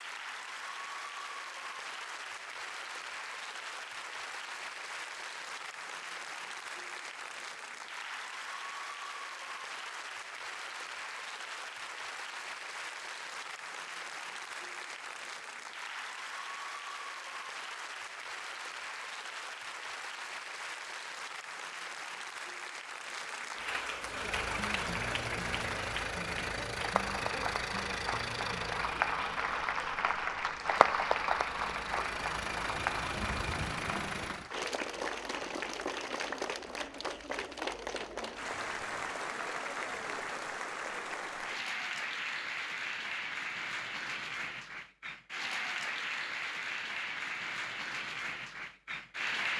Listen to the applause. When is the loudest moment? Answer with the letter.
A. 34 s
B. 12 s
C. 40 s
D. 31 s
D.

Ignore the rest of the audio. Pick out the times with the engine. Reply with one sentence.
You can hear the engine from 24.0 to 34.5 s.